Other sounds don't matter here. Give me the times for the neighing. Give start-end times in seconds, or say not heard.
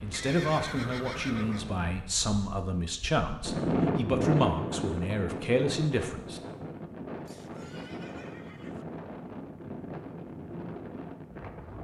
0.1-1.6, 7.2-8.8.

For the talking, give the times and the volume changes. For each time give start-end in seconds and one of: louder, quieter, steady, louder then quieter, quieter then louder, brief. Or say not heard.
0.0-6.4 steady.